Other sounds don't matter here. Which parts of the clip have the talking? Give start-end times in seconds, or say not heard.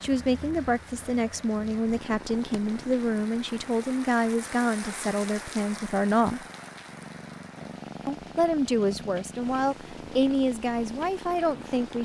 0.0-6.5, 8.1-12.0.